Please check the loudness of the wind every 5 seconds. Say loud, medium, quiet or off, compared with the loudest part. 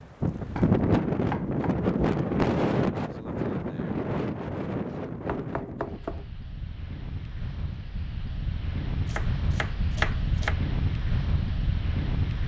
loud, medium, medium.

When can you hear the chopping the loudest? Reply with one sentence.
The volume of the chopping peaks at 10 seconds.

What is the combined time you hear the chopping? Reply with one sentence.
You can hear the chopping for 4 seconds altogether.